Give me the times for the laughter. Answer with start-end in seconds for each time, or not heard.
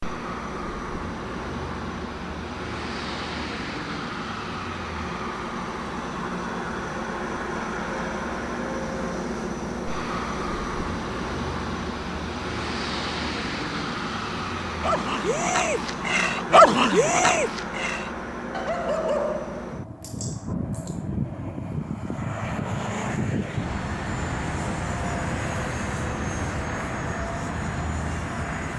not heard.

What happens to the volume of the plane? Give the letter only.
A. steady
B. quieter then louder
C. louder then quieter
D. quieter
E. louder
A.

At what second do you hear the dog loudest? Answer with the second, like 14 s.
17 s.